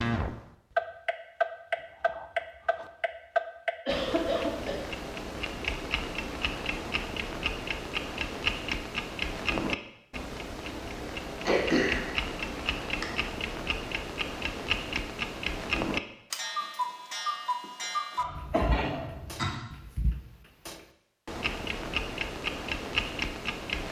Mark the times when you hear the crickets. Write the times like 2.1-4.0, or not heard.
not heard.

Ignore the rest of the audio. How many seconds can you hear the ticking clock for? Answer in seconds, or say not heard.
24 s.